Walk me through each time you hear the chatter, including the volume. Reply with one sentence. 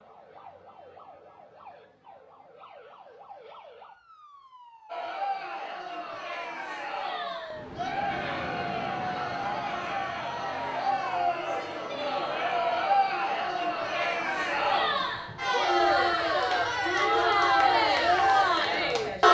The chatter can be heard from 4.8 to 19.2 s, getting louder.